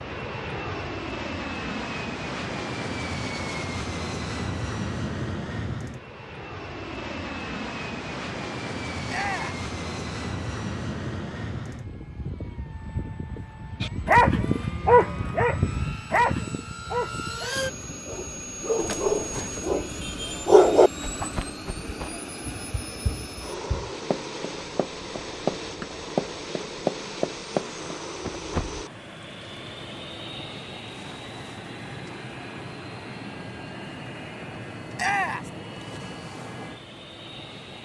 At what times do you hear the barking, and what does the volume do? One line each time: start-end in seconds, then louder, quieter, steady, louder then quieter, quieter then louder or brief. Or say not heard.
13.8-21.3 quieter then louder.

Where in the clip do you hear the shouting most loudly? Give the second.
35 s.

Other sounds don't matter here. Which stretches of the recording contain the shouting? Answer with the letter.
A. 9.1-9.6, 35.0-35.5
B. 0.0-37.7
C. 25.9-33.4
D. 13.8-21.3
A.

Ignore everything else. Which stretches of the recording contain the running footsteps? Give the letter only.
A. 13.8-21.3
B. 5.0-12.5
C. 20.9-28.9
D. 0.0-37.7
C.